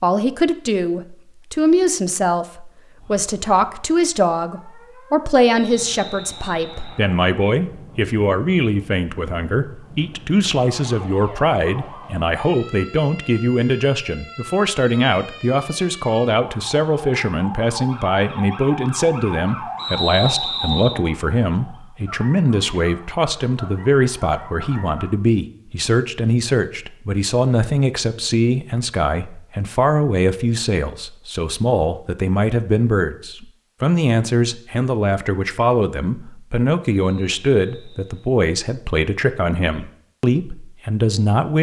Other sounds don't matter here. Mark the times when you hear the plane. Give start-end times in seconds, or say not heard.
not heard.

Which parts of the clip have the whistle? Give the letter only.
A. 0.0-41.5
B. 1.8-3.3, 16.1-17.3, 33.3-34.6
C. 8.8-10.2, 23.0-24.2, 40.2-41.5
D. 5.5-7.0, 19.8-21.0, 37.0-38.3
D.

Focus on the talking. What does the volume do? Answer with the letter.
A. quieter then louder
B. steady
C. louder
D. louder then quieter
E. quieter
B.